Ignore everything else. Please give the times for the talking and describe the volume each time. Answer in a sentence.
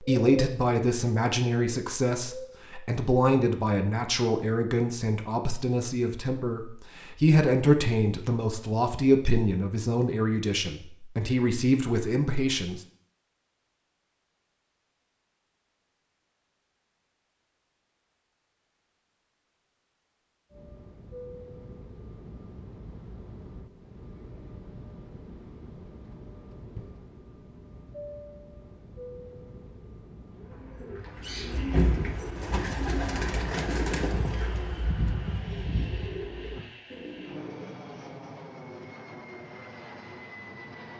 You can hear the talking from 0.0 to 12.8 s, at a steady volume.